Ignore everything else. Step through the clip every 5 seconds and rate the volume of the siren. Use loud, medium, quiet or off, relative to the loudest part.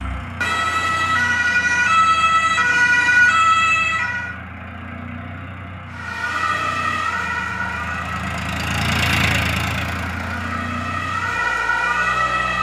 loud, medium, medium.